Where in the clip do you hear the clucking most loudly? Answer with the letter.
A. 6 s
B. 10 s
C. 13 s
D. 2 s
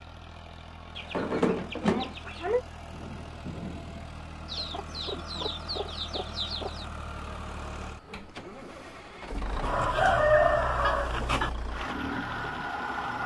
B.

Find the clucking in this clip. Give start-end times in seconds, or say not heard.
0.9-2.6, 4.5-6.8, 9.6-11.5.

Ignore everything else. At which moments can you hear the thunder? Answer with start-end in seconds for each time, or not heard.
2.9-4.2.